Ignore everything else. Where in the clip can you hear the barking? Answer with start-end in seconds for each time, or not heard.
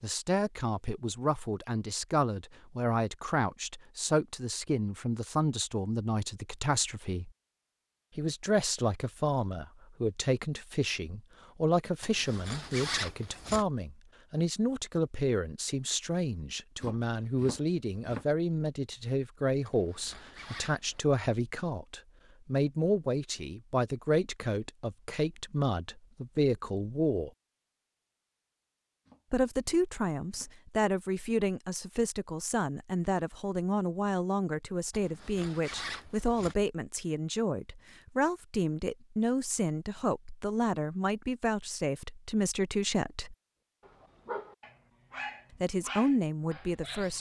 43.8-47.1.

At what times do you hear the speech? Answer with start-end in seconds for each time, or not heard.
0.0-7.3, 8.2-27.3, 29.3-43.4, 45.6-47.1.